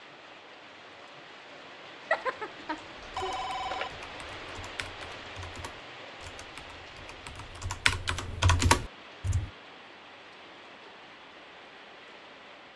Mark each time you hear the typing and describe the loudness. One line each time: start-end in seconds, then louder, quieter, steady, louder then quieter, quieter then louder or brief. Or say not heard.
3.1-9.5 louder.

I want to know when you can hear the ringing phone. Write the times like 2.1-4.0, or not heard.
2.1-3.9.